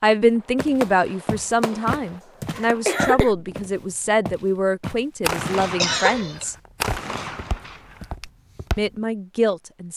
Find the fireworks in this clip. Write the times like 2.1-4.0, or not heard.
0.3-3.7, 5.2-8.3.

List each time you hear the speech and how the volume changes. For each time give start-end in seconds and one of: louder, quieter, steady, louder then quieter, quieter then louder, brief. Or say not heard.
0.0-6.5 steady
8.8-9.9 brief.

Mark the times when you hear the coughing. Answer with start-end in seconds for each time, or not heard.
2.5-3.3, 5.8-6.5.